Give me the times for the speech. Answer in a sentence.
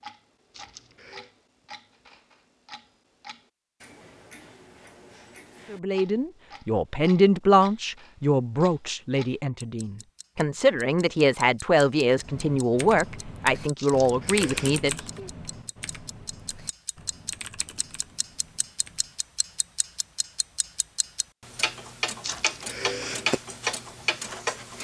You can hear the speech from 5.7 to 15.3 s.